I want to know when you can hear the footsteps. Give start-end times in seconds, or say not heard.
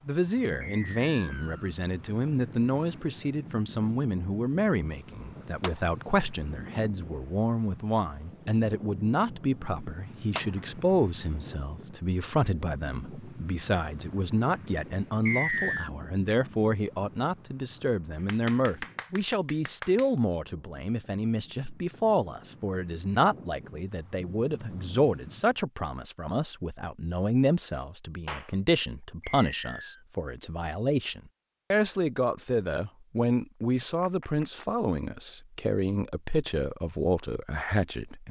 not heard.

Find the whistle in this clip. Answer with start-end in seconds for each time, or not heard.
0.6-1.7, 15.2-15.9, 29.2-30.1.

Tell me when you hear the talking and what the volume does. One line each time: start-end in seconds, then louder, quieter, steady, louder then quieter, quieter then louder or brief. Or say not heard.
0.1-38.2 steady.